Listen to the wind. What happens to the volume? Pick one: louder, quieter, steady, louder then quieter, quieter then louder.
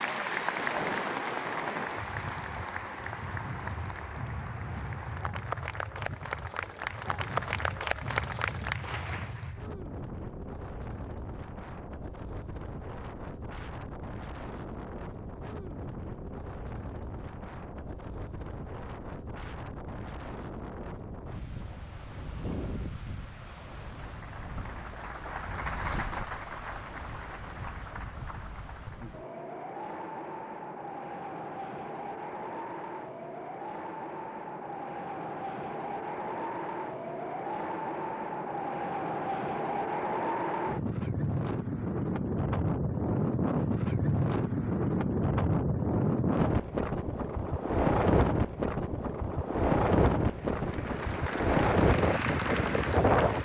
louder.